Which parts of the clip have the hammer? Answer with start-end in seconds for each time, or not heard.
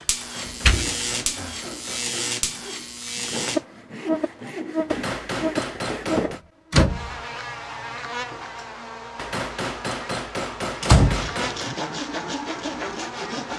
0.2-2.3, 4.9-6.4, 9.2-11.8.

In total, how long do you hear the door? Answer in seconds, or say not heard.
3 s.